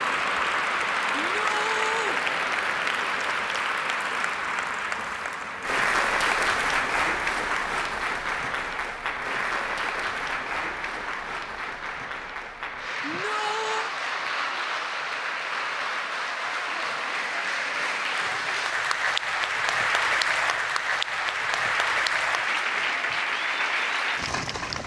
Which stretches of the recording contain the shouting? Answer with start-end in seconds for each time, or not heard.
1.2-2.2, 13.0-13.9.